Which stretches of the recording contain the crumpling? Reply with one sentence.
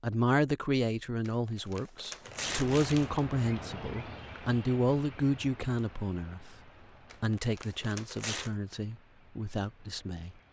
The crumpling can be heard from 1.2 to 3.2 s and from 7.1 to 8.5 s.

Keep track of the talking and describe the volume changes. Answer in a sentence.
The loudness of the talking goes down.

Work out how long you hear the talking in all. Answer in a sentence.
You can hear the talking for 10 seconds altogether.